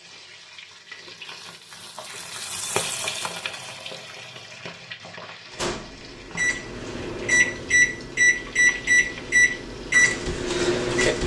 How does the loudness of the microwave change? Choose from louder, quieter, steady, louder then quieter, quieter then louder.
louder.